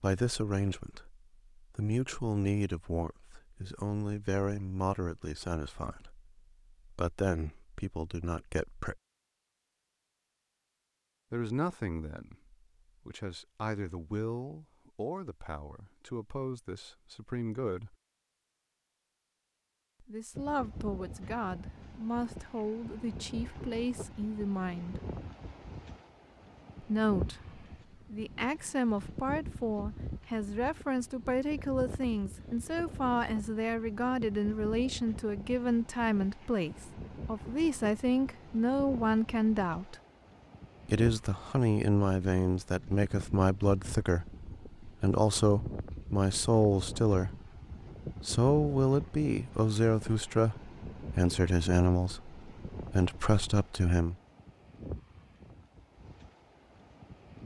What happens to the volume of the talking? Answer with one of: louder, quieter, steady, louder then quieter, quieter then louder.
louder.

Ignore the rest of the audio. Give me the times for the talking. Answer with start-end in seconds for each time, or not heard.
0.0-9.0, 11.3-17.9, 20.0-25.0, 26.8-40.0, 40.9-47.4, 48.2-54.1.